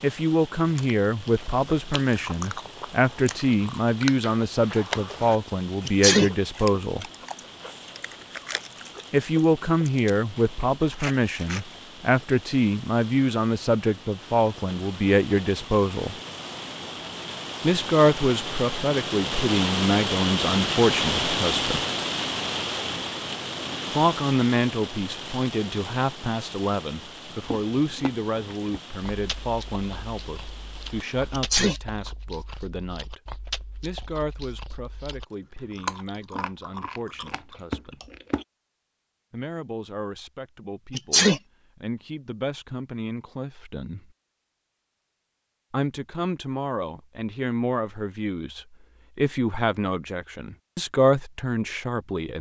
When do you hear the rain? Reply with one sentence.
The rain can be heard from 0.0 to 31.5 s.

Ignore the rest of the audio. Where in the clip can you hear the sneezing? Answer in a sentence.
The sneezing can be heard from 5.8 to 6.3 s, from 31.3 to 31.8 s and from 40.9 to 41.4 s.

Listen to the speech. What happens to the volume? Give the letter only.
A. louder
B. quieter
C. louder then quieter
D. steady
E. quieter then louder
E.